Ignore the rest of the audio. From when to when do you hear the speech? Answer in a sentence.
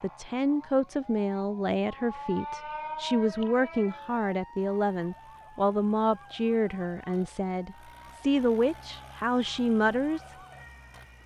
The speech can be heard from 0.0 to 10.3 s.